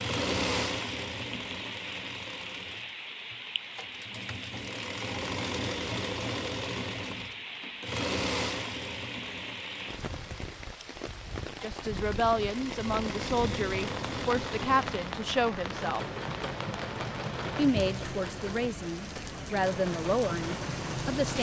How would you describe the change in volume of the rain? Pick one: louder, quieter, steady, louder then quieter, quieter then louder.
steady.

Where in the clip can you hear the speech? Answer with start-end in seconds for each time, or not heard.
11.6-16.0, 17.6-21.3.